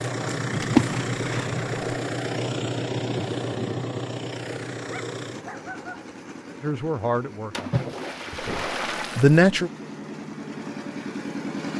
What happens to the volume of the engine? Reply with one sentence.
The volume of the engine goes down, then up.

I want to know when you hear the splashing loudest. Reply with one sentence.
The volume of the splashing peaks at 1 second.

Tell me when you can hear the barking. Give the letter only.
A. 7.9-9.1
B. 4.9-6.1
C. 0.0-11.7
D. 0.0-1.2
B.